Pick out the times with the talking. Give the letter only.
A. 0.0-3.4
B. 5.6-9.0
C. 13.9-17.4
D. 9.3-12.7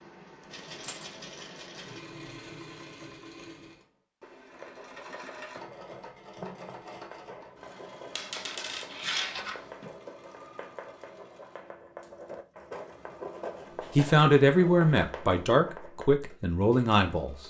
C.